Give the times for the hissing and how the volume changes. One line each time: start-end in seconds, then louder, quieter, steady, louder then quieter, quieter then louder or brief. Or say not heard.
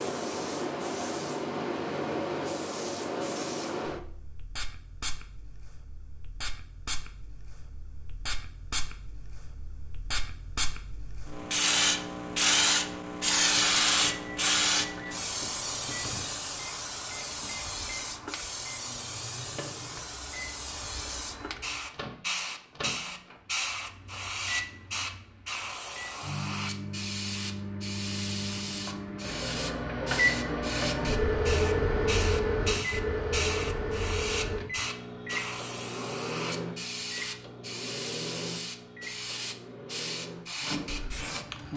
0.0-41.7 louder then quieter.